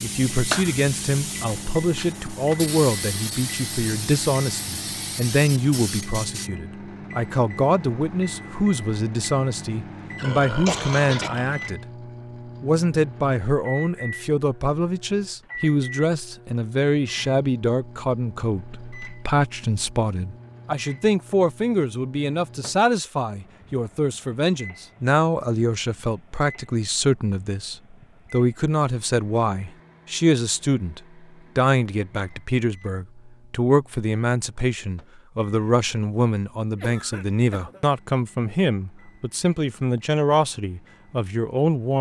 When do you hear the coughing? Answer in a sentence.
You can hear the coughing from 10.7 to 11.3 s and from 36.7 to 37.9 s.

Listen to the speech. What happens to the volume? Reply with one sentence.
The volume of the speech stays about the same.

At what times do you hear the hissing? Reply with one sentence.
The hissing can be heard from 0.0 to 6.5 s.